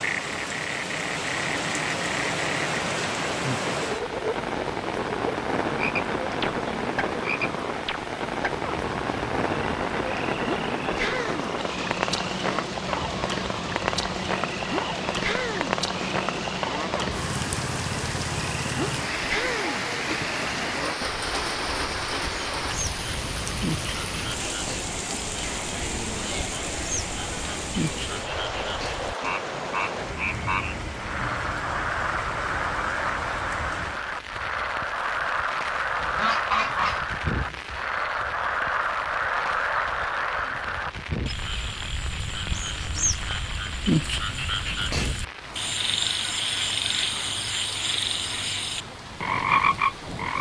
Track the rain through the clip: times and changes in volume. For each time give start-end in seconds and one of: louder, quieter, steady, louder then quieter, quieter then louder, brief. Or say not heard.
0.0-50.3 quieter.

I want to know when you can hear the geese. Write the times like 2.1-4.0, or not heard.
36.0-37.5.